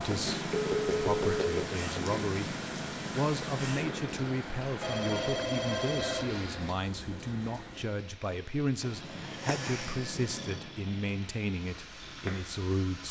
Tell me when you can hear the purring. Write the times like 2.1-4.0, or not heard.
0.0-4.3, 8.8-12.8.